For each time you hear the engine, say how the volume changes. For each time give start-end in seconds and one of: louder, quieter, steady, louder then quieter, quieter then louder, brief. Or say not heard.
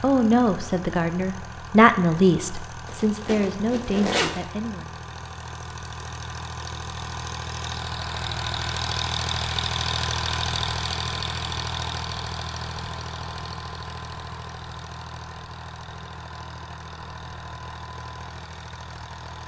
0.0-19.4 louder then quieter.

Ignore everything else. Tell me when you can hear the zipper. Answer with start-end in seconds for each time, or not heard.
2.9-4.3.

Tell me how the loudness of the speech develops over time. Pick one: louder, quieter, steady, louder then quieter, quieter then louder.
louder then quieter.